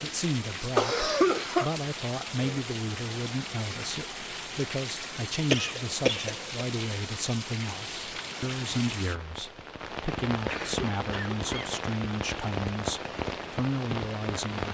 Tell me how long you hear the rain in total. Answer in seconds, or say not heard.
15 s.